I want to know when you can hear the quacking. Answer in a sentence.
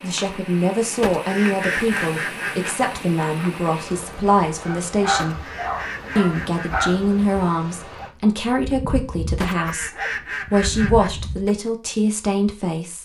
You can hear the quacking from 1.0 to 2.8 s, from 5.2 to 6.9 s and from 9.4 to 11.1 s.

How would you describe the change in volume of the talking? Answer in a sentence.
The loudness of the talking stays about the same.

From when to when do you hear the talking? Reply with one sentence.
The talking can be heard from 0.0 to 5.5 s and from 6.2 to 13.0 s.